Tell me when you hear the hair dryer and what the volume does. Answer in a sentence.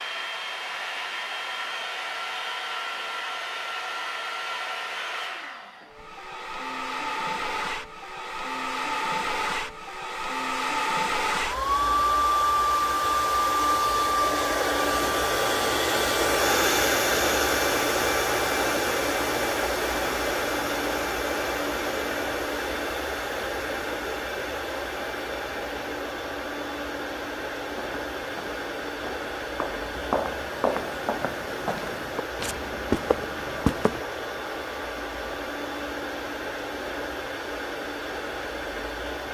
The hair dryer can be heard from 0.0 to 39.2 s, getting louder then quieter.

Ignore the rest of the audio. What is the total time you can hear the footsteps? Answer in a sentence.
You can hear the footsteps for 6 seconds altogether.